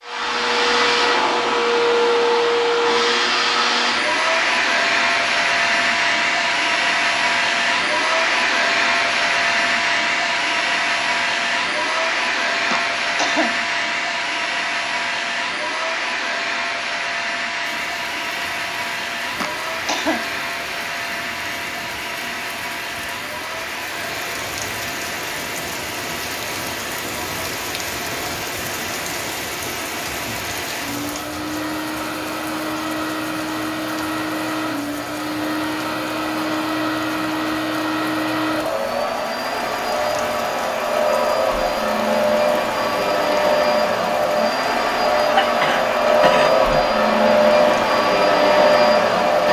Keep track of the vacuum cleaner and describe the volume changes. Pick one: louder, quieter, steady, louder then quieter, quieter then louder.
quieter then louder.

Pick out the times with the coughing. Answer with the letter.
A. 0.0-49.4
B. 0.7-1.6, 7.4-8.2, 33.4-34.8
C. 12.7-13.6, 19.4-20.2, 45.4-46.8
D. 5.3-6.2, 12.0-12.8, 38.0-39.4
C.